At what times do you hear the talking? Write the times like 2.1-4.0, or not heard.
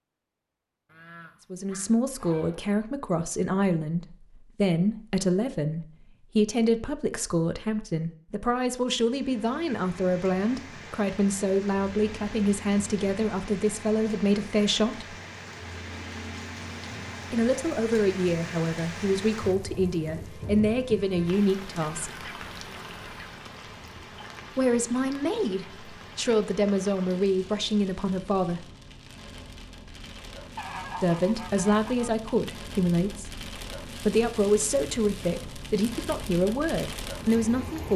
1.5-15.2, 17.3-22.2, 24.6-28.6, 31.0-37.9.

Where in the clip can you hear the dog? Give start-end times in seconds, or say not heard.
not heard.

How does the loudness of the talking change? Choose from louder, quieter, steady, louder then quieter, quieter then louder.
steady.